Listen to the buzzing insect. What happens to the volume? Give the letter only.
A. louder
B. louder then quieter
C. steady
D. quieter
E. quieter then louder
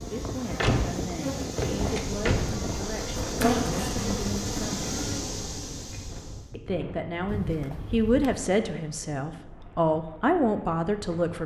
B.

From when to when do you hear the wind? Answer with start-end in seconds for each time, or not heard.
0.0-11.4.